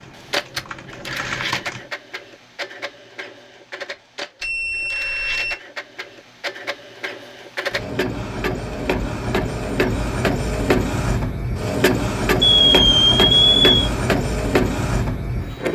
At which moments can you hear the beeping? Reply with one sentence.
The beeping can be heard from 4.4 to 5.5 s and from 12.4 to 13.8 s.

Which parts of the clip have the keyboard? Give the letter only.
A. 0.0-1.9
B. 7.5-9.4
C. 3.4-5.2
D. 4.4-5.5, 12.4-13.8
A.